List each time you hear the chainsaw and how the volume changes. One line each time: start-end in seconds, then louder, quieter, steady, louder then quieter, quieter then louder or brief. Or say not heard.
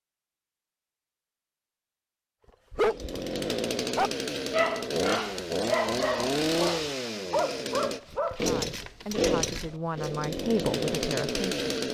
2.8-11.8 steady.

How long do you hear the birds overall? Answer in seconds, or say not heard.
not heard.